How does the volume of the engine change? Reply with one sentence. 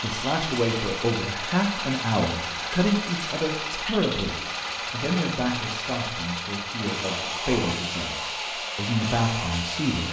The loudness of the engine stays about the same.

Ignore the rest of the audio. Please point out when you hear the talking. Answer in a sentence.
The talking can be heard from 0.0 to 10.0 s.